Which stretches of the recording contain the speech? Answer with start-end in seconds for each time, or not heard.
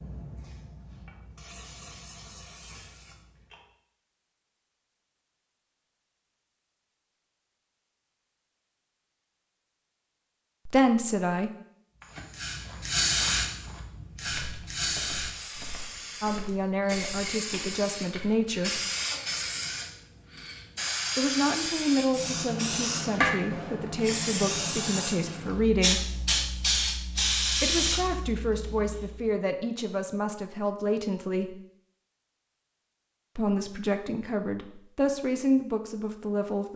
10.7-11.5, 16.2-18.8, 21.1-26.1, 27.6-31.6, 33.4-36.7.